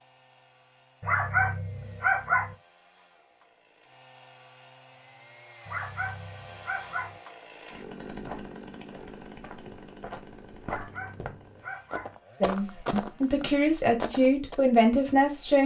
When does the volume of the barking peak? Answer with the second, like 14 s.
2 s.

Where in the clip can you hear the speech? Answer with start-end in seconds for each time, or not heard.
12.4-15.6.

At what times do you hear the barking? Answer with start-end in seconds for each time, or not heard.
1.0-2.5, 5.7-7.2, 10.6-12.2.